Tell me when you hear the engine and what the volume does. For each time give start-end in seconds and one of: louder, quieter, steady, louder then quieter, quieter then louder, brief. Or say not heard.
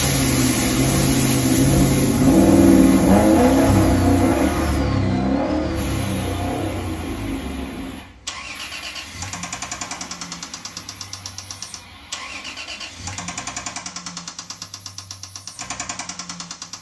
0.0-16.7 quieter.